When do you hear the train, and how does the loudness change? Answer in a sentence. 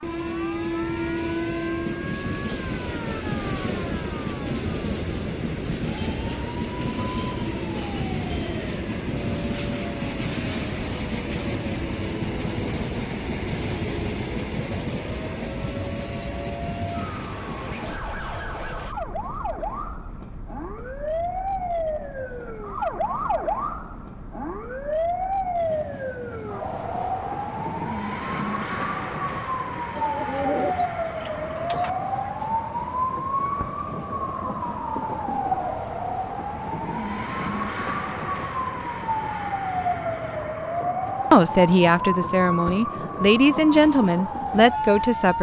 The train can be heard from 0.0 to 45.3 s, getting quieter.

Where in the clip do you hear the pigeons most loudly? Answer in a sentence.
The loudest moment of the pigeons is at 31 seconds.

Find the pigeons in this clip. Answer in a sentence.
The pigeons can be heard from 29.9 to 31.9 s.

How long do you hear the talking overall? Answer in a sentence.
The talking can be heard for 4 seconds in total.